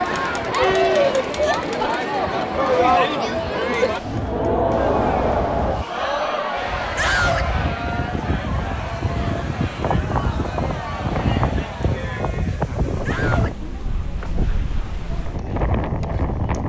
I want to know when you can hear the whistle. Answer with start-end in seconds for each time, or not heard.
not heard.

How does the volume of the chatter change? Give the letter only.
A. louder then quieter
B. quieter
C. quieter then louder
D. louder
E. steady
B.